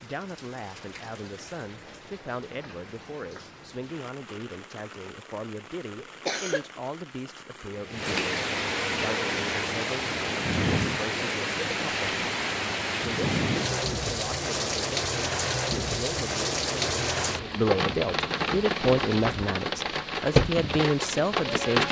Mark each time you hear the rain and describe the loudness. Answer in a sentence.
You can hear the rain from 0.0 to 21.8 s, getting louder.